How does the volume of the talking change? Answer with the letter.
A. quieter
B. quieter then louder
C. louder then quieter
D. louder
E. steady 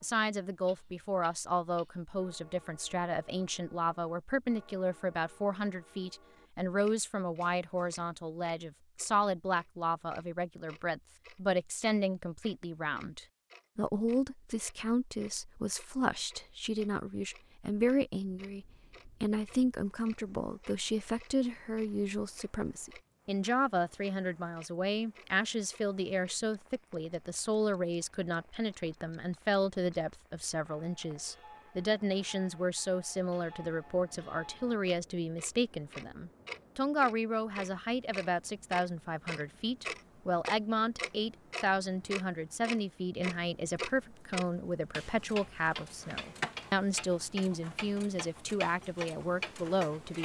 E.